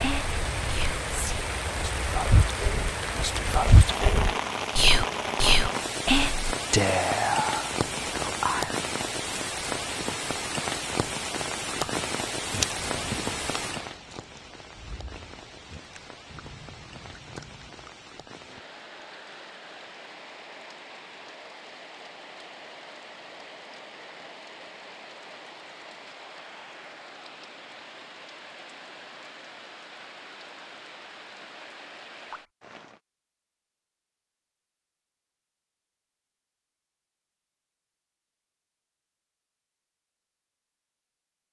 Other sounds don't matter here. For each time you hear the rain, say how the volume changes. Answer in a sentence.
You can hear the rain from 0.0 to 33.0 s, getting quieter.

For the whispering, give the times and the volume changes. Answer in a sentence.
You can hear the whispering from 0.0 to 8.8 s, getting louder.